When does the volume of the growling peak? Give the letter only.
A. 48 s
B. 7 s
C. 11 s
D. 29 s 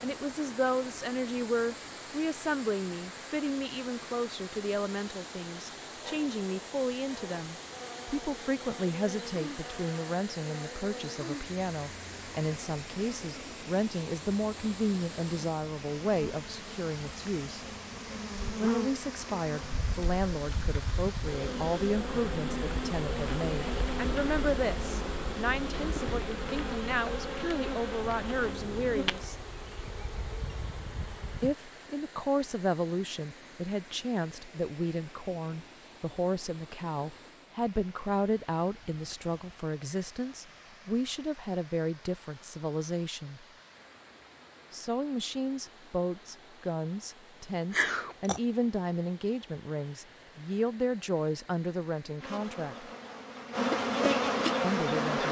A.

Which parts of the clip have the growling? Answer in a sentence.
You can hear the growling from 6.0 to 7.5 s, from 27.9 to 29.1 s and from 47.7 to 48.4 s.